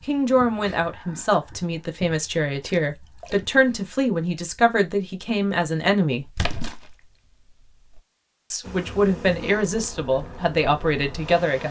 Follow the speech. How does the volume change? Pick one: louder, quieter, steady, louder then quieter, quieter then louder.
steady.